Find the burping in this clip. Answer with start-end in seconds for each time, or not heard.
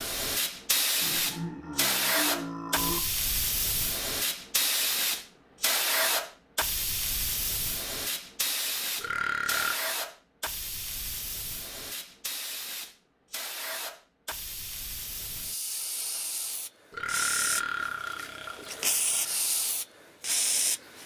1.0-3.0, 8.9-9.8, 16.9-19.4.